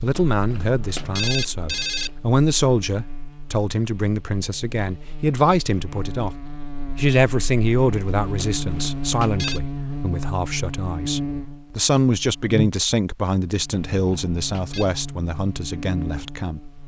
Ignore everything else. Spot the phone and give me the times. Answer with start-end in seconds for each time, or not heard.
0.1-2.1, 8.3-9.6, 13.9-14.9.